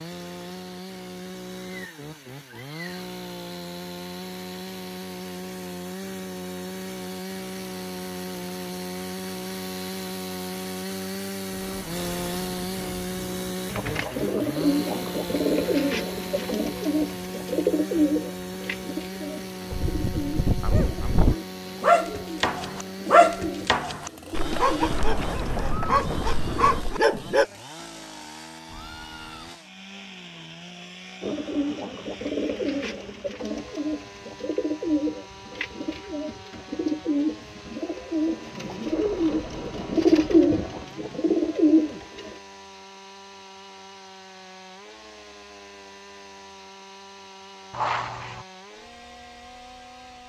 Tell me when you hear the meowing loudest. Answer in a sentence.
The loudest moment of the meowing is at 48 seconds.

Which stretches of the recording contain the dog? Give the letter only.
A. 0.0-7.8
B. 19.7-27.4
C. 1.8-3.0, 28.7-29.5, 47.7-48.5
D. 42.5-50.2
B.